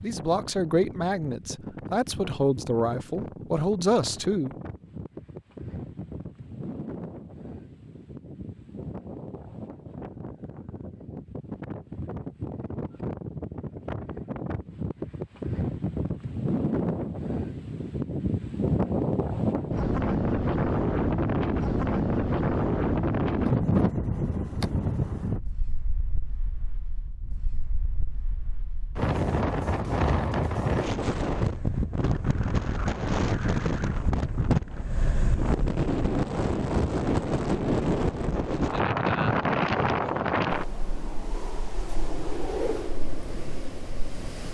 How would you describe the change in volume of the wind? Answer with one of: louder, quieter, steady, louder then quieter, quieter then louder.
louder.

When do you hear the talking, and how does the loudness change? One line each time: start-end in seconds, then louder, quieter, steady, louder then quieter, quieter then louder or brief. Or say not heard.
0.0-4.5 quieter then louder.